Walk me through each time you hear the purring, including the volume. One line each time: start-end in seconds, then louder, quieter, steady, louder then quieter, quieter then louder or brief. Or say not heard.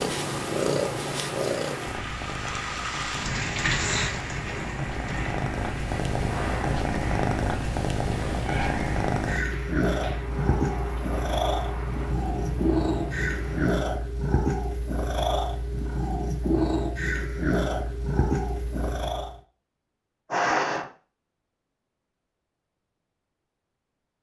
0.0-19.4 steady.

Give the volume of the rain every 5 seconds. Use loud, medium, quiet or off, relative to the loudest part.
loud, medium, medium, off, off.